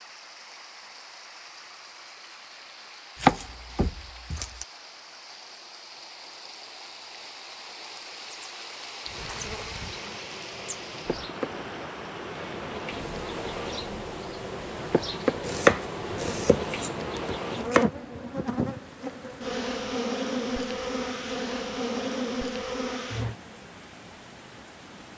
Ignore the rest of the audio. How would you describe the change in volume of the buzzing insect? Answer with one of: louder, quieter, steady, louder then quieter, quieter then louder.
louder.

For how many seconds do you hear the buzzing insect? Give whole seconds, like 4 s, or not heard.
14 s.